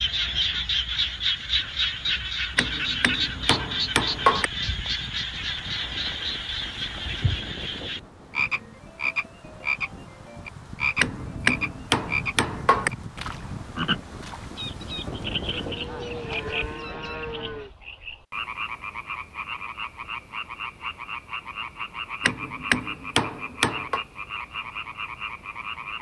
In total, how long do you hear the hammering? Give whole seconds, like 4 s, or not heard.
6 s.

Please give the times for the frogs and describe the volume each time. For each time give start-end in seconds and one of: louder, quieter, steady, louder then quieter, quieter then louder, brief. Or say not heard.
0.0-25.9 quieter.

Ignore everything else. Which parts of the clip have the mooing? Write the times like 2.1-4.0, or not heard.
15.1-17.7.